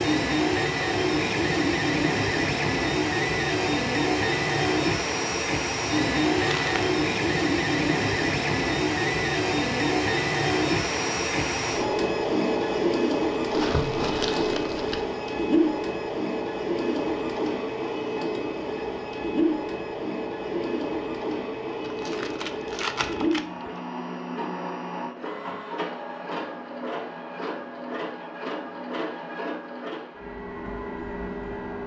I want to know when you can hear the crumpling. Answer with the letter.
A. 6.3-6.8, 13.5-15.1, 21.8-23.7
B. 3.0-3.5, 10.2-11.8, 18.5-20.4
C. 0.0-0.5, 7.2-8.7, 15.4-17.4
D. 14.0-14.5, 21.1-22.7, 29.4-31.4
A.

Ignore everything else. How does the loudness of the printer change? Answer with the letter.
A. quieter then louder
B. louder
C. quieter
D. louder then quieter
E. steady
C.